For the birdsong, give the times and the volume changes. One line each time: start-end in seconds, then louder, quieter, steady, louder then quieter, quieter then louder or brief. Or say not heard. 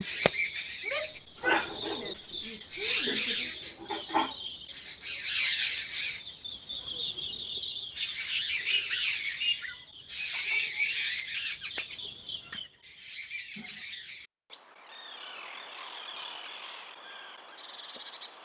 0.0-18.4 quieter.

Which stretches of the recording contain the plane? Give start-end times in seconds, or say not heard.
not heard.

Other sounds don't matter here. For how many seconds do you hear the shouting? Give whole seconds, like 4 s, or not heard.
3 s.